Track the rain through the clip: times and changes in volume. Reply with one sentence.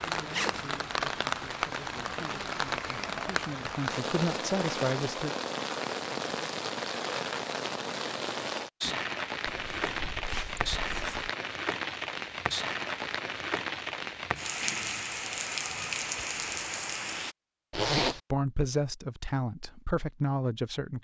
The rain can be heard from 0.0 to 17.4 s, at a steady volume.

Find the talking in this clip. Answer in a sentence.
The talking can be heard from 0.0 to 5.3 s and from 17.8 to 21.0 s.